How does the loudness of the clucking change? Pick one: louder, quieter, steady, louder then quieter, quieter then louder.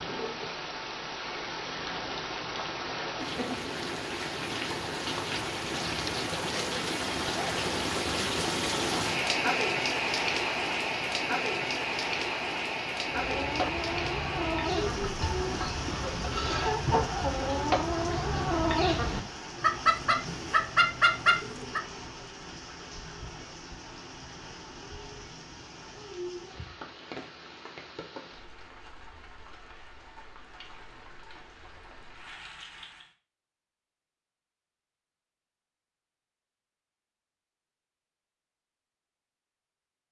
louder.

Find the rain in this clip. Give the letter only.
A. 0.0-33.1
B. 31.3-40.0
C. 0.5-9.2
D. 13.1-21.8
A.